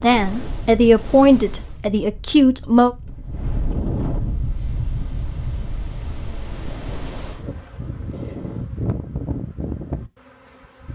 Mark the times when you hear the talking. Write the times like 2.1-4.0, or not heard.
0.0-3.0.